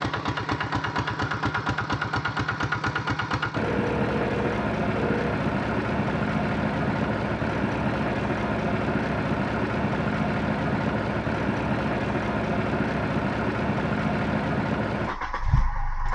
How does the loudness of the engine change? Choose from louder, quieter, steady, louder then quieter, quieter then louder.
steady.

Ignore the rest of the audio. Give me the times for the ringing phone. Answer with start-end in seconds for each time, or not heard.
3.5-5.2.